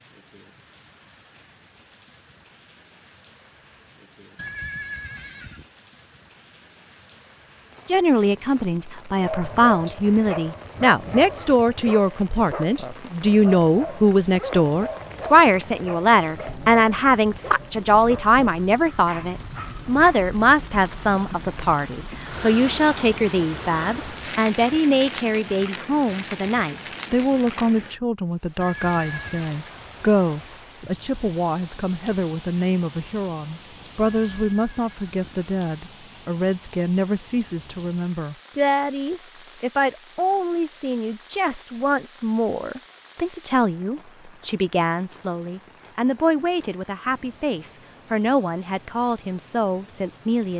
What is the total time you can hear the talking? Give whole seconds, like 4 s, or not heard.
43 s.